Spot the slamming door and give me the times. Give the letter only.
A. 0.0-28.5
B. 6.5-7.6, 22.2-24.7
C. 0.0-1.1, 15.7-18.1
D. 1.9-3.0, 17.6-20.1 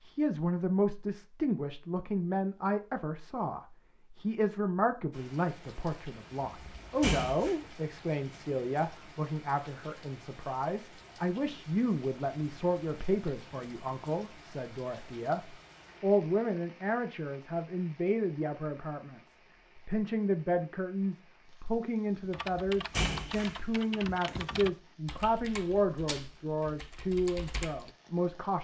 B.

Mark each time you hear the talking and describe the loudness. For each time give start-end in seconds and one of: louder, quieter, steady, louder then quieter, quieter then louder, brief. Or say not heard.
0.0-28.5 steady.